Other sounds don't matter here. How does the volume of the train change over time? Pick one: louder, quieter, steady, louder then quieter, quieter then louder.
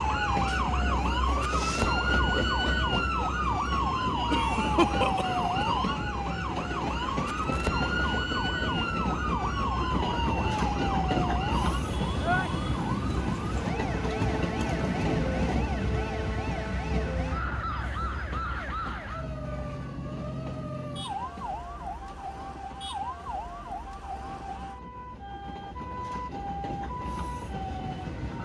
quieter.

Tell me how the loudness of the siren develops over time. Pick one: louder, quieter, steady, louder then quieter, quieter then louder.
quieter.